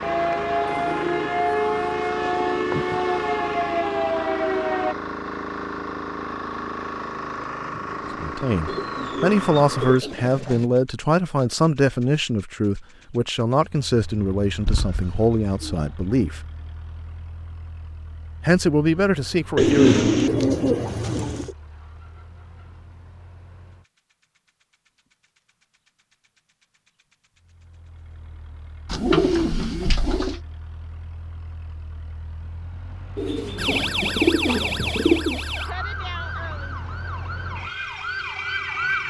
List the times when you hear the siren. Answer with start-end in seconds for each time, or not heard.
0.0-5.0, 33.5-39.0.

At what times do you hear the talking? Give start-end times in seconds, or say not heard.
8.2-16.4, 18.4-20.3.